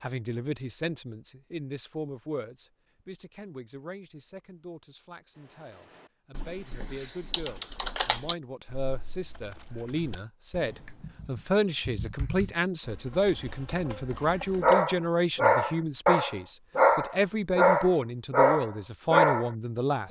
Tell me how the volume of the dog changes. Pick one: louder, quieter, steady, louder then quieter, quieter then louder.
steady.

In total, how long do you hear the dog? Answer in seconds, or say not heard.
5 s.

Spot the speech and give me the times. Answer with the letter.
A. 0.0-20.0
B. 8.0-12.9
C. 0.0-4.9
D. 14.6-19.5
A.